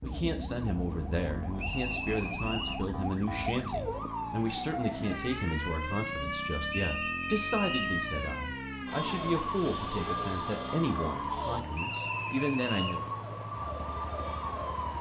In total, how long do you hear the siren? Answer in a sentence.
You can hear the siren for 15 seconds altogether.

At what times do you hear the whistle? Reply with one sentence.
You can hear the whistle from 1.6 to 2.9 s, from 6.7 to 7.9 s and from 11.7 to 13.0 s.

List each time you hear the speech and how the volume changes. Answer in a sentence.
You can hear the speech from 0.0 to 13.1 s, at a steady volume.